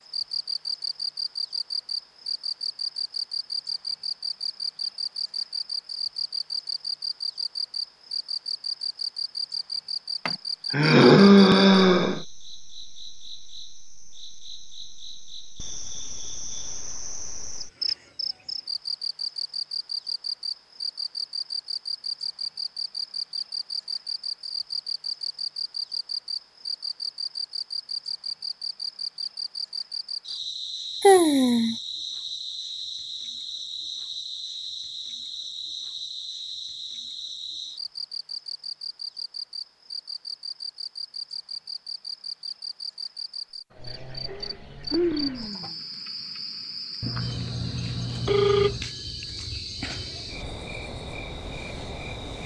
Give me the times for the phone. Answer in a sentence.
The phone can be heard from 47.0 to 48.9 s.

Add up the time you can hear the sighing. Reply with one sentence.
You can hear the sighing for 4 seconds altogether.